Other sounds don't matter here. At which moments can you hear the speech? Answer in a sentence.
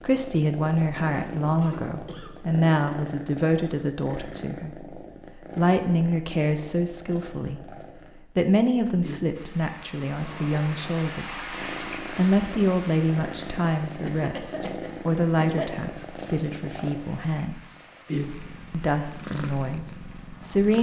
You can hear the speech from 0.0 to 7.7 s, from 8.3 to 17.6 s and from 18.7 to 20.7 s.